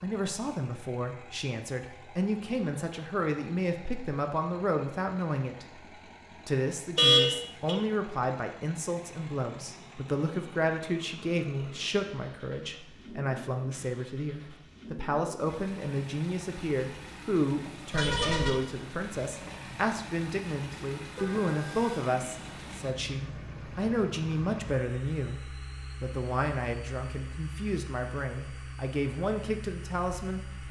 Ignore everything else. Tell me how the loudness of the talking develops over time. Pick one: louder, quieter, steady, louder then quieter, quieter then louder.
steady.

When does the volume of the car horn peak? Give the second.
7 s.